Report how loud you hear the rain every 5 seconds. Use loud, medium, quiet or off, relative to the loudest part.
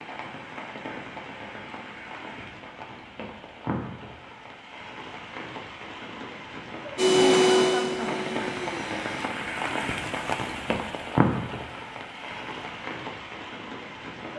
medium, loud, loud.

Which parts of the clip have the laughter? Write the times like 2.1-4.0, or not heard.
7.1-8.4.